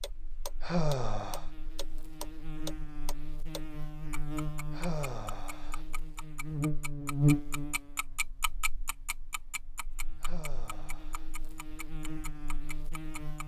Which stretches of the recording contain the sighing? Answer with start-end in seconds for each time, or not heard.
0.6-1.4, 4.7-5.8, 10.2-11.3.